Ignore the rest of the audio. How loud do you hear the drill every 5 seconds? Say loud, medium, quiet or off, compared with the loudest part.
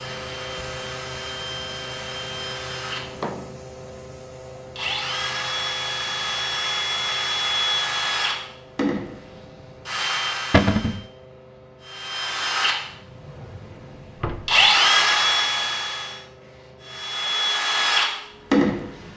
medium, loud, loud, loud.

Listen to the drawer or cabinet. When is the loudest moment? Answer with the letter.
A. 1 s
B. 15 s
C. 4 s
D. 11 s
D.